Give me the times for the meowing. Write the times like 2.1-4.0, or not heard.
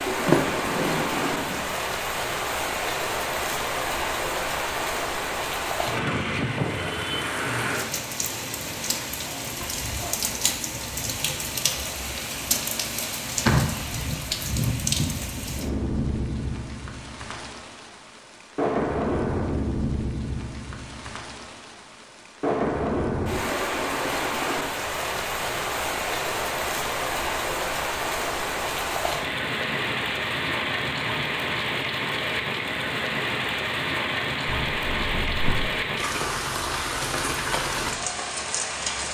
not heard.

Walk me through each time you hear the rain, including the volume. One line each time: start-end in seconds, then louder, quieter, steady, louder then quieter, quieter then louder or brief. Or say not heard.
0.0-39.0 steady.